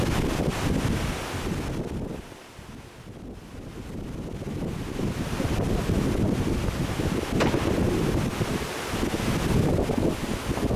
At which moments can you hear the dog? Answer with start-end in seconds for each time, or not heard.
not heard.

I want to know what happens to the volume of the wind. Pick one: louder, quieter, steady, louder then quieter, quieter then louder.
quieter then louder.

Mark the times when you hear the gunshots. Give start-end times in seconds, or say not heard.
7.4-7.9.